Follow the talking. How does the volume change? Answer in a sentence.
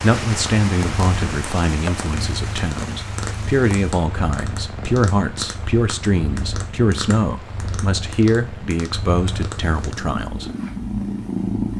The loudness of the talking stays about the same.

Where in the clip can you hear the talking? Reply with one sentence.
The talking can be heard from 0.0 to 10.5 s.